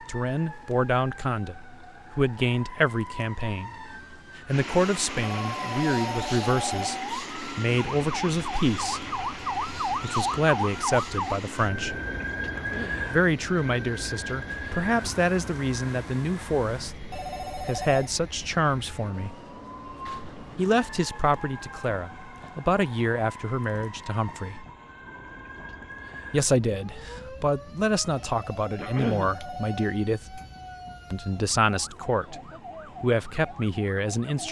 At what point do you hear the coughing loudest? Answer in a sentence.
The loudest moment of the coughing is at 29 seconds.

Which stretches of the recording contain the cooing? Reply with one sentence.
You can't hear the cooing here.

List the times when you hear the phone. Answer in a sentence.
The phone can be heard from 5.3 to 7.0 s, from 17.1 to 18.1 s and from 28.1 to 29.9 s.